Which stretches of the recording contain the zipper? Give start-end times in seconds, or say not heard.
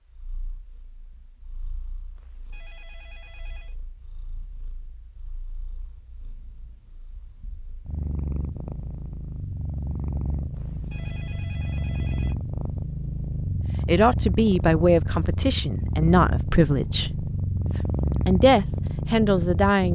not heard.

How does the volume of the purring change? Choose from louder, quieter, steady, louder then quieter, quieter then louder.
louder.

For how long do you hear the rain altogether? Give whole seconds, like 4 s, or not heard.
not heard.